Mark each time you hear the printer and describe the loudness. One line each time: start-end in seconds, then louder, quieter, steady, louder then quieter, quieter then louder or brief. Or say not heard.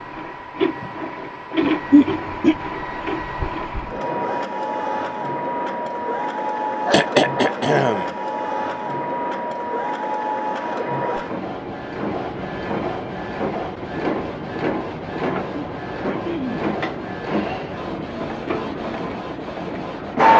0.0-20.3 steady.